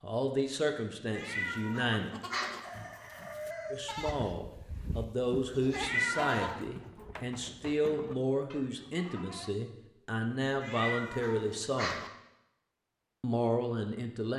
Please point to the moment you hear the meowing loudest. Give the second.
6 s.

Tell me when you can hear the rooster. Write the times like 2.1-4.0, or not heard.
2.6-4.1.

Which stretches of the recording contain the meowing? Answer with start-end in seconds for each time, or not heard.
1.1-2.6, 5.7-6.6, 10.6-12.1.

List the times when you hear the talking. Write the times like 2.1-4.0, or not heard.
0.0-2.1, 3.7-11.9, 13.2-14.3.